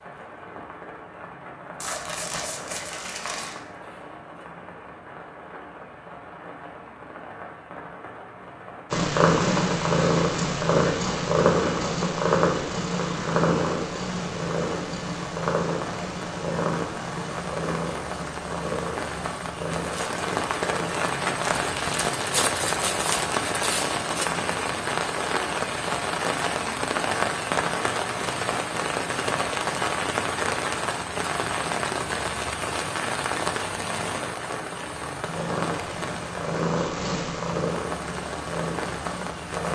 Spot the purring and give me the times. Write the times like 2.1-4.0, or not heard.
8.9-21.2, 35.2-39.7.